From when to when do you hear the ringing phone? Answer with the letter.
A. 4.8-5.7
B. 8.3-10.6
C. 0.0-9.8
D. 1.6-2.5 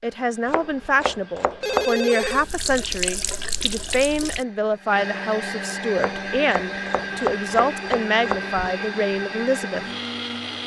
D.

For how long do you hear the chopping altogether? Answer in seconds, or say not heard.
4 s.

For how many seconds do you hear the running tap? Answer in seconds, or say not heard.
2 s.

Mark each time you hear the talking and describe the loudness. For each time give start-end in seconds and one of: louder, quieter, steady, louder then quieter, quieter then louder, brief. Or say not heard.
0.0-9.8 steady.